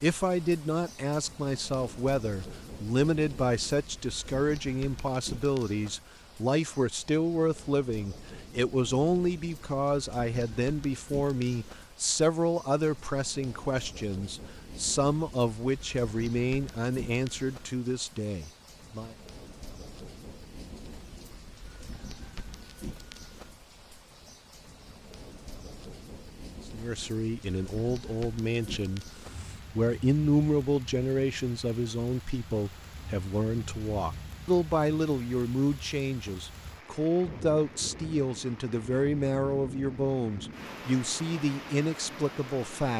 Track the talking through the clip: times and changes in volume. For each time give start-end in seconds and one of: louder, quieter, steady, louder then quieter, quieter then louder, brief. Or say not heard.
0.0-19.1 steady
26.7-42.9 steady.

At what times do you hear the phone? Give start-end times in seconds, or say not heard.
not heard.